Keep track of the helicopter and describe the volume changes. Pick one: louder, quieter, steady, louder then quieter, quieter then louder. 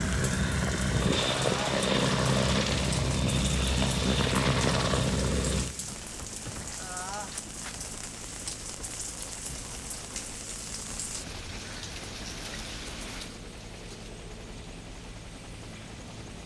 quieter.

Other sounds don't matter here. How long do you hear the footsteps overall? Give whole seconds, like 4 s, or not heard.
not heard.